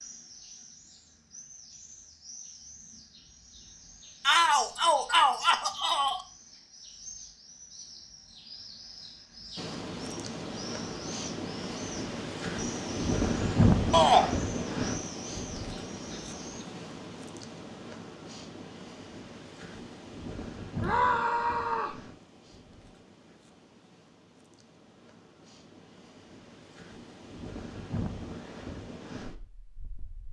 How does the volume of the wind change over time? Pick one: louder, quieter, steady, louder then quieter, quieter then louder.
quieter then louder.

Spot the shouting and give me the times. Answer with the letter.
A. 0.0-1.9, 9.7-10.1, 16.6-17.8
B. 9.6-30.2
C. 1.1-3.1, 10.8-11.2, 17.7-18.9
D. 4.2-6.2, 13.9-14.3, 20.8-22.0
D.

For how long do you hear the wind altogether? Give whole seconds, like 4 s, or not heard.
21 s.